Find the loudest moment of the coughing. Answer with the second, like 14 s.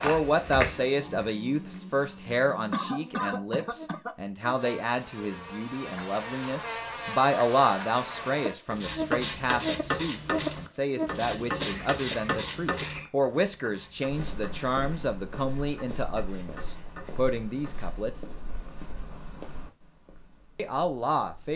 3 s.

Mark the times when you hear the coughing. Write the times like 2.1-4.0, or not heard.
2.7-4.2, 11.6-13.1.